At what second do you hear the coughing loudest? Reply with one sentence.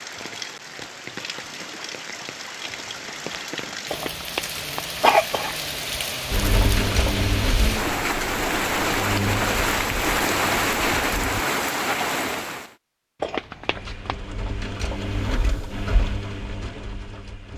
The loudest moment of the coughing is at 5 seconds.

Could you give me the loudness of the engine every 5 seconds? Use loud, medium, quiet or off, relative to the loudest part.
off, loud, medium, medium.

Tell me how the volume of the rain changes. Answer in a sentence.
The volume of the rain goes up.